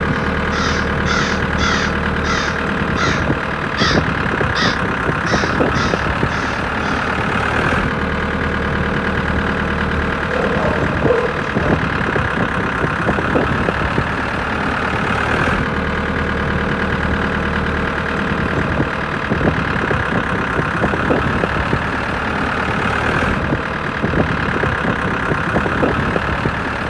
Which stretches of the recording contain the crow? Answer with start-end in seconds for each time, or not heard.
0.3-7.2.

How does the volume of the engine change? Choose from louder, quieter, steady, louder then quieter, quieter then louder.
steady.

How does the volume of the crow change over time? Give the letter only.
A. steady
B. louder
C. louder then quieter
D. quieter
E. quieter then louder
D.